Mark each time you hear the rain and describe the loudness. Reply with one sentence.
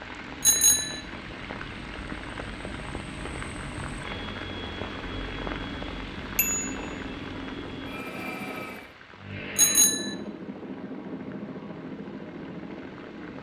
The rain can be heard from 0.0 to 13.3 s, getting quieter.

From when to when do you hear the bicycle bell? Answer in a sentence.
You can hear the bicycle bell from 0.4 to 1.0 s, from 6.3 to 7.1 s and from 9.6 to 10.2 s.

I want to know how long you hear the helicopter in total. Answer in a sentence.
The helicopter can be heard for 13 seconds in total.